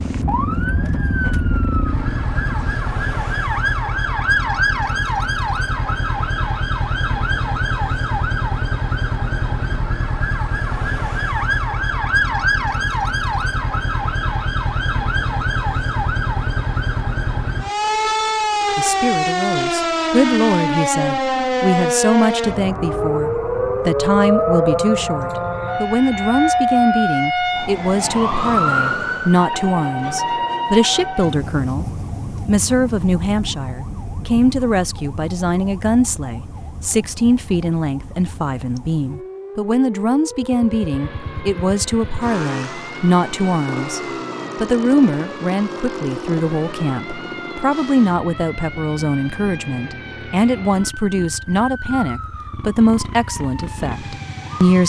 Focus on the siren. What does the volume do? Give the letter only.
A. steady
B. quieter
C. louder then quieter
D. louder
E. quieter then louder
B.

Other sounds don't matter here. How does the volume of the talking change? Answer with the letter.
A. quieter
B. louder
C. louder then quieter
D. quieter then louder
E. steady
E.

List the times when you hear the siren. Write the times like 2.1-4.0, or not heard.
0.0-54.8.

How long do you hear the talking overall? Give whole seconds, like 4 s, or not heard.
35 s.